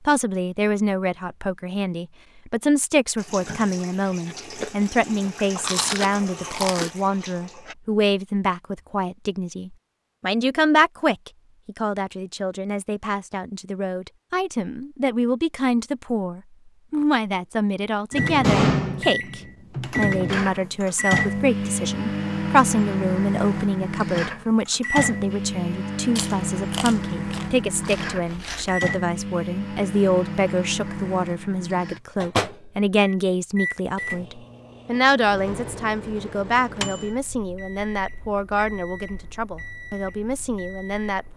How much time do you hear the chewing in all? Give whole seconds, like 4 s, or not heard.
5 s.